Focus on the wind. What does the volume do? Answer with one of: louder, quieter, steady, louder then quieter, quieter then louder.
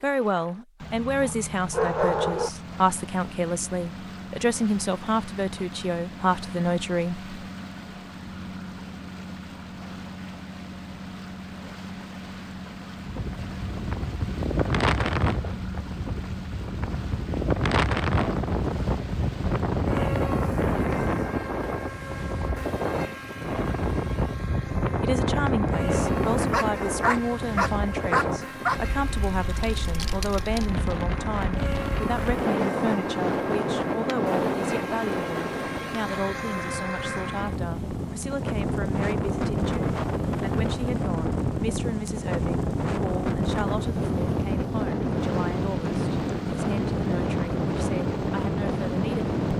steady.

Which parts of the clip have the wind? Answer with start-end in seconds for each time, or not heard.
13.0-49.5.